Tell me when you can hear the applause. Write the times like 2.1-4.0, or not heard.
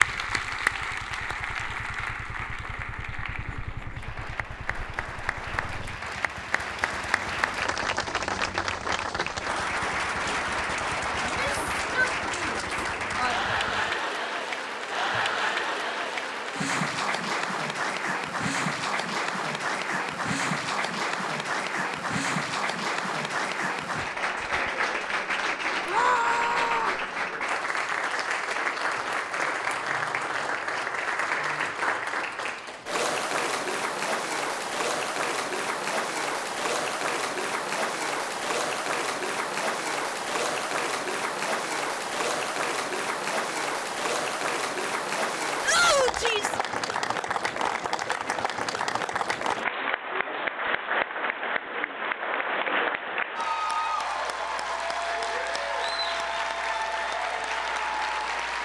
0.0-58.6.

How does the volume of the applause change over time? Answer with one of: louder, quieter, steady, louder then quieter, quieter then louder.
steady.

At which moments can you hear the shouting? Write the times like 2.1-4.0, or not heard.
11.2-13.4, 25.9-27.1, 45.6-46.6.